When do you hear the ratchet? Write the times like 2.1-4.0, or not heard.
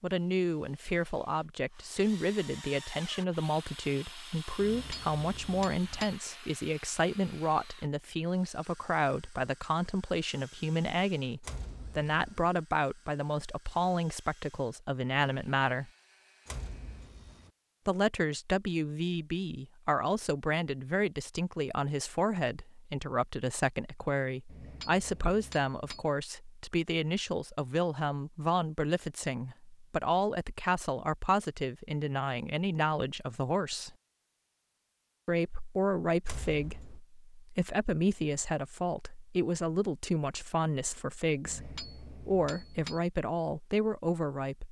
not heard.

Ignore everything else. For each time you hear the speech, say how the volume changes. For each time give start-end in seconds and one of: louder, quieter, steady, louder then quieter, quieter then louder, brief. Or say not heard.
0.0-15.9 steady
17.9-34.0 steady
35.2-44.6 steady.